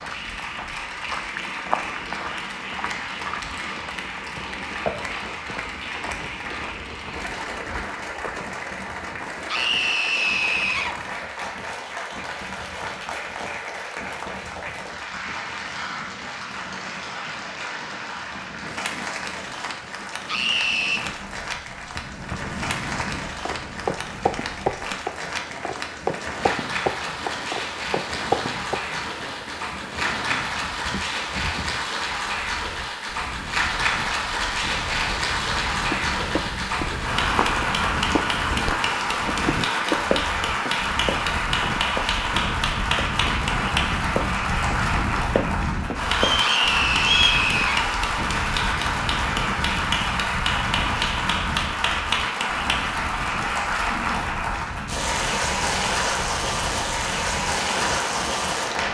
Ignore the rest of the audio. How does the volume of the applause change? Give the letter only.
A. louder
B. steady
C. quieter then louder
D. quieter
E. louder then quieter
A.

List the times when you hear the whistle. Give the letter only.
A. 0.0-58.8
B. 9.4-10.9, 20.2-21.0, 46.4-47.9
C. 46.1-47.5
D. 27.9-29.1
C.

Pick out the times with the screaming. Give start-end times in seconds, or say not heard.
9.4-10.9, 20.2-21.0, 46.4-47.9.